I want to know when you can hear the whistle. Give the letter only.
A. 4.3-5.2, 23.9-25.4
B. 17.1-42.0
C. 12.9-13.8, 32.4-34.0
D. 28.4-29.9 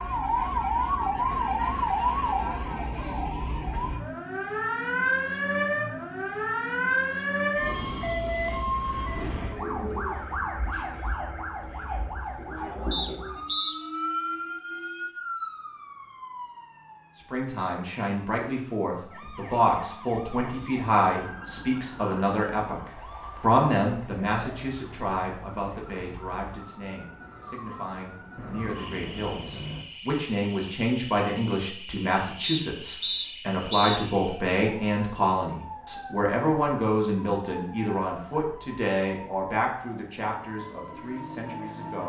C.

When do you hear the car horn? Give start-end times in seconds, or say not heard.
28.4-29.9.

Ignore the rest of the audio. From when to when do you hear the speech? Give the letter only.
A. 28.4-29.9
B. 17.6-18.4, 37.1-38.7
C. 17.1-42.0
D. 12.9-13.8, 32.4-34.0
C.